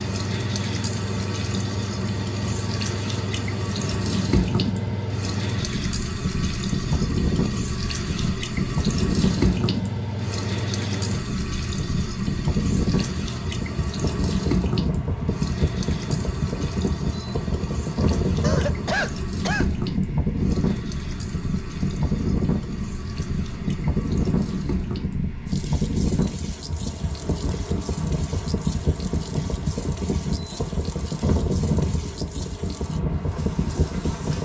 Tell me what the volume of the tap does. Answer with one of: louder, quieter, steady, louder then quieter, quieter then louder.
quieter.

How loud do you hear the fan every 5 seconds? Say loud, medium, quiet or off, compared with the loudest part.
medium, loud, loud, loud, loud, loud, loud.